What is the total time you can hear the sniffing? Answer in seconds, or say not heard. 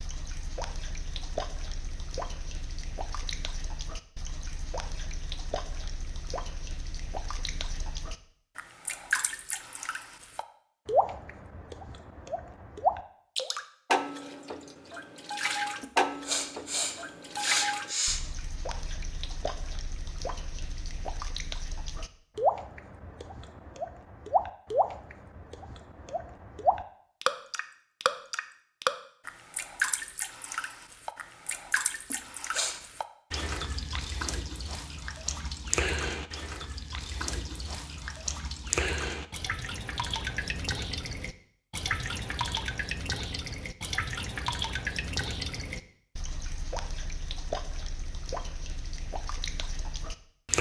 3 s.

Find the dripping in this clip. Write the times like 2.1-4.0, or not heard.
0.0-50.5.